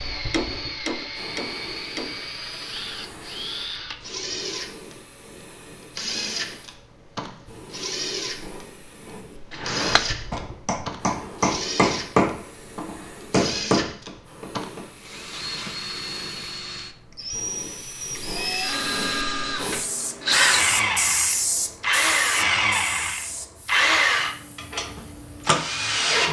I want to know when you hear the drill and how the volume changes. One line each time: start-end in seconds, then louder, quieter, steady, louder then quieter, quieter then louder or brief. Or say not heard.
0.0-26.2 louder.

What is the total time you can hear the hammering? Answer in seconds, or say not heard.
8 s.